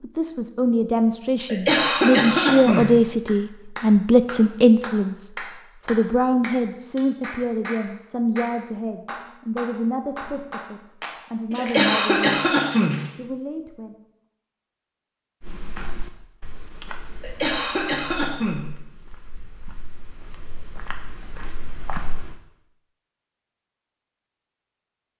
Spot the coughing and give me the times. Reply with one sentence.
The coughing can be heard from 1.4 to 2.9 s, from 11.6 to 12.9 s and from 17.2 to 18.6 s.